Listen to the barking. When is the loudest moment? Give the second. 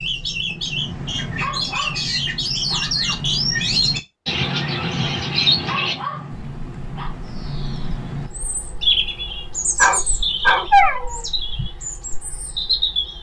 11 s.